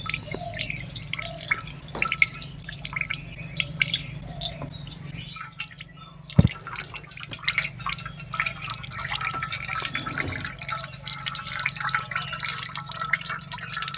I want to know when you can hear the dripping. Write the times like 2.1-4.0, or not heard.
0.0-13.9.